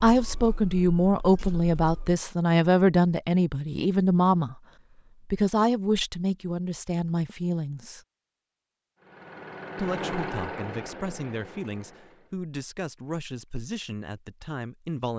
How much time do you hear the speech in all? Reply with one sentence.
The speech can be heard for 13 seconds in total.